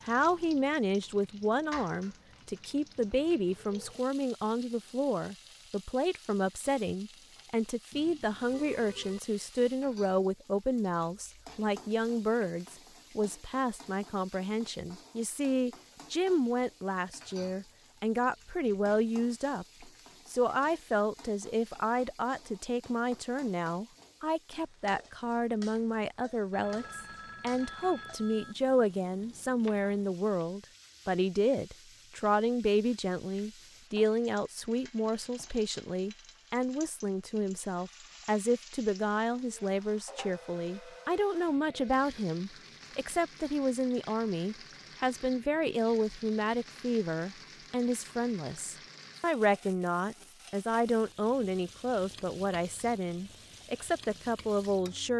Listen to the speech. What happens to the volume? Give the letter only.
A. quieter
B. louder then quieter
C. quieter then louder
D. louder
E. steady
E.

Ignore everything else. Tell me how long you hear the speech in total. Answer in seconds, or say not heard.
55 s.